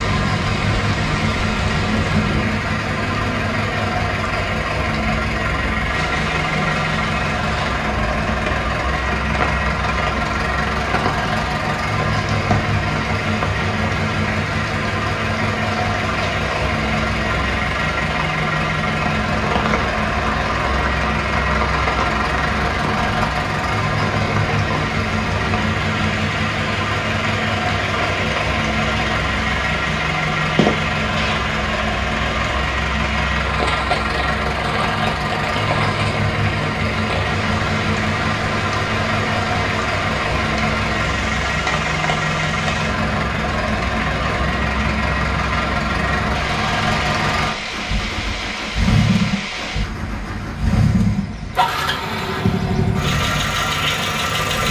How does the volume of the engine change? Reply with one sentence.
The volume of the engine stays about the same.